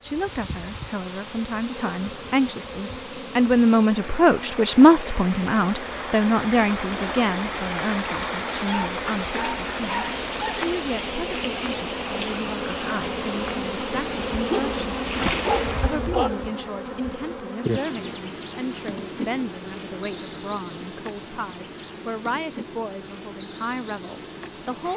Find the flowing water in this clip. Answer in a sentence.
The flowing water can be heard from 0.0 to 16.1 s.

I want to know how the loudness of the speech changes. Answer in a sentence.
The loudness of the speech goes down.